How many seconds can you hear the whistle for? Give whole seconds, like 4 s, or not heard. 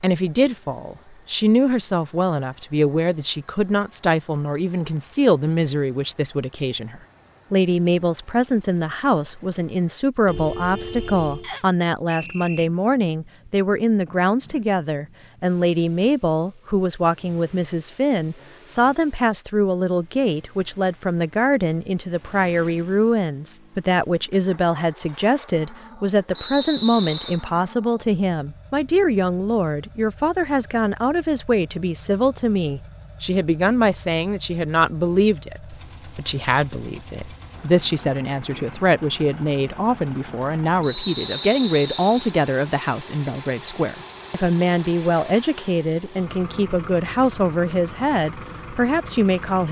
4 s.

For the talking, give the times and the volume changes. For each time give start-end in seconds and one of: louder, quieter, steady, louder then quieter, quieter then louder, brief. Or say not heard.
0.0-49.6 steady.